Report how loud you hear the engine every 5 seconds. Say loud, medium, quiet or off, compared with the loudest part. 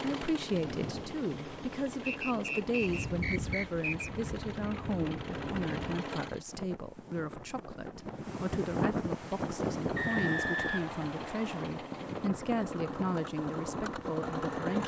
medium, loud, loud.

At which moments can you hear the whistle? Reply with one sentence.
You can hear the whistle from 2.0 to 4.1 s and from 9.9 to 11.7 s.